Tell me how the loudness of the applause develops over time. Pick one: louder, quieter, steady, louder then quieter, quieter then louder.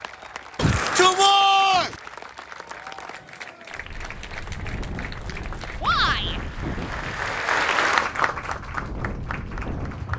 louder.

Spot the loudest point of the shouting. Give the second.
1 s.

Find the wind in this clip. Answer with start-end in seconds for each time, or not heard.
3.8-10.1.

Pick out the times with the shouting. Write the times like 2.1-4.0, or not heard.
0.6-1.9, 5.8-6.4.